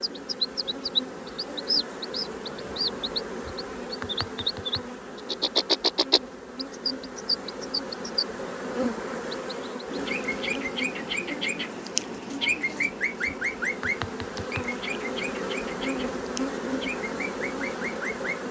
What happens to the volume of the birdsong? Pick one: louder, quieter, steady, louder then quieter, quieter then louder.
quieter.